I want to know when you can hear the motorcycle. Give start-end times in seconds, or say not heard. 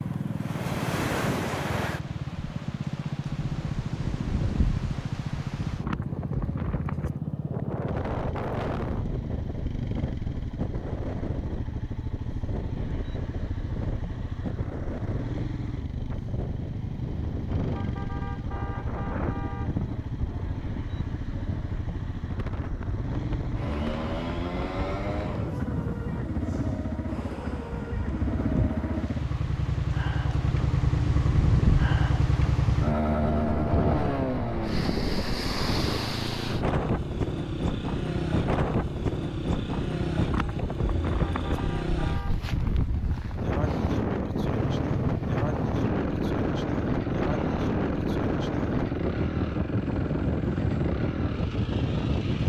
0.0-52.4.